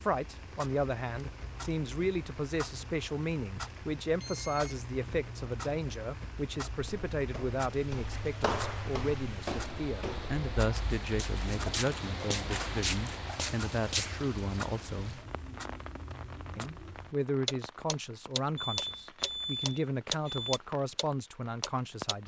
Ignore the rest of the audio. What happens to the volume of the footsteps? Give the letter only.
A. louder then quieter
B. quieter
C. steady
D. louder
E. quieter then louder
E.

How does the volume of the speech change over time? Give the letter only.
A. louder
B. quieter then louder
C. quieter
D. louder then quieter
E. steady
E.